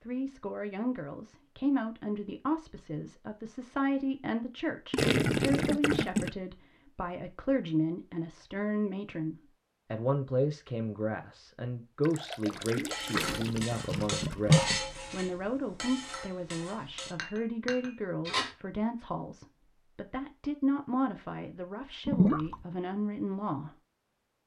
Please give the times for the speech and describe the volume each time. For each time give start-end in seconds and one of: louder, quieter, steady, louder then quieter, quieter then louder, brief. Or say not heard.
0.0-23.8 steady.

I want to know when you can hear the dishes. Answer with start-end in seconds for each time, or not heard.
12.7-18.6.